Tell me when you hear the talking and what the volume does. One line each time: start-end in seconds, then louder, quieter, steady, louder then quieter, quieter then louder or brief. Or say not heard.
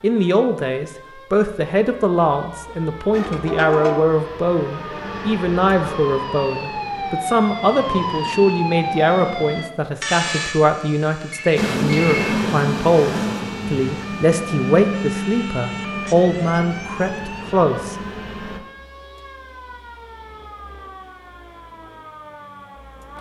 0.0-17.9 steady.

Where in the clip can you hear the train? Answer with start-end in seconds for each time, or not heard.
3.1-9.7, 11.6-18.6.